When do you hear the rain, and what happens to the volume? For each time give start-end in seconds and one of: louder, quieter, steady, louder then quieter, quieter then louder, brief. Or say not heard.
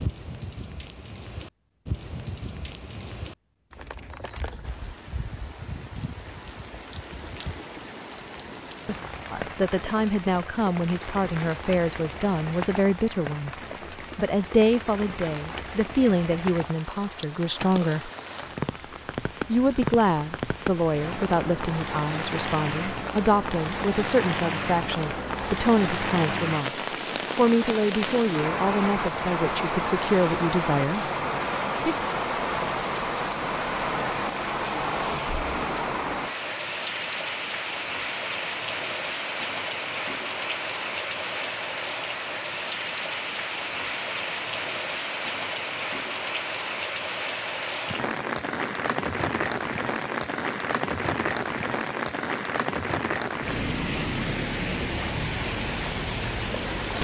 0.0-56.9 louder.